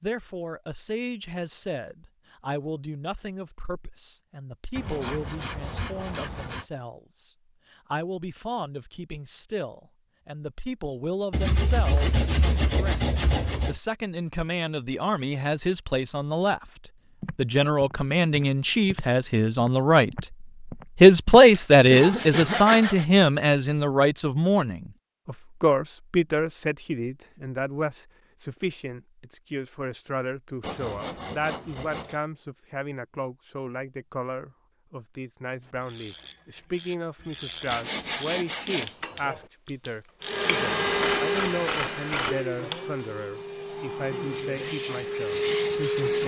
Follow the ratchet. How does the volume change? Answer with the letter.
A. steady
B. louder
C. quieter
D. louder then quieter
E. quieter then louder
B.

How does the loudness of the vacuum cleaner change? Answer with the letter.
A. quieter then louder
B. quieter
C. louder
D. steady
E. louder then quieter
A.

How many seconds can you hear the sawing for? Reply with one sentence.
The sawing can be heard for 9 seconds in total.